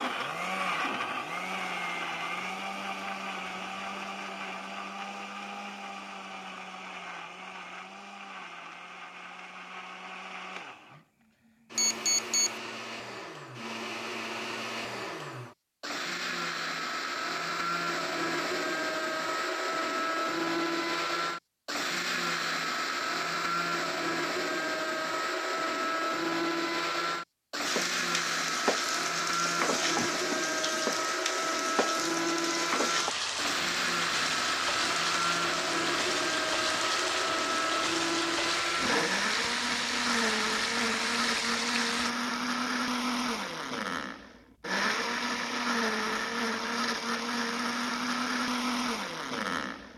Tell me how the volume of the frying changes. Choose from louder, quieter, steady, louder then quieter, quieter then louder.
steady.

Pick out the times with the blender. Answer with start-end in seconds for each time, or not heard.
0.0-49.9.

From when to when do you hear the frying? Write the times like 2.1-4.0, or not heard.
27.6-42.1.